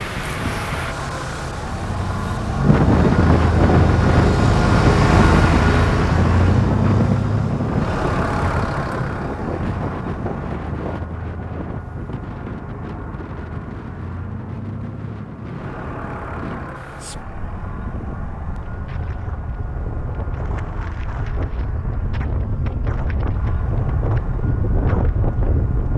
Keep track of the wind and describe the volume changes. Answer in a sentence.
The loudness of the wind goes down, then up.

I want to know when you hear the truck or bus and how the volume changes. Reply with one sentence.
You can hear the truck or bus from 0.0 to 25.9 s, getting quieter.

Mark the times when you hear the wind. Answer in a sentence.
The wind can be heard from 0.0 to 25.9 s.